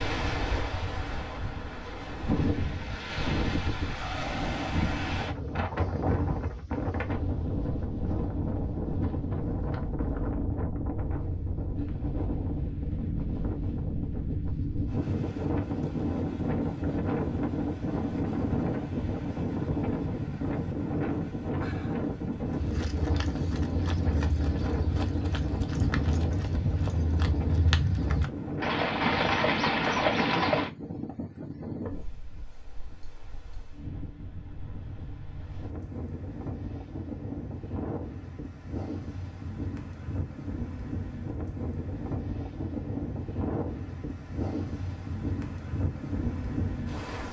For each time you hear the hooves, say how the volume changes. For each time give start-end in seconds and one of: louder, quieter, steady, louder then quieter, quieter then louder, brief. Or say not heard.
22.5-30.7 louder.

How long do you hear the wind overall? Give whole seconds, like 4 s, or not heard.
47 s.